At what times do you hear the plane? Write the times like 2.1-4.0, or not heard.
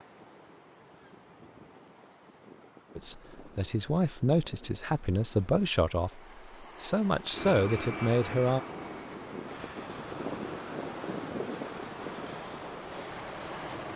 7.3-13.9.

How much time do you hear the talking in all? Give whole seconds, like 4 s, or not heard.
6 s.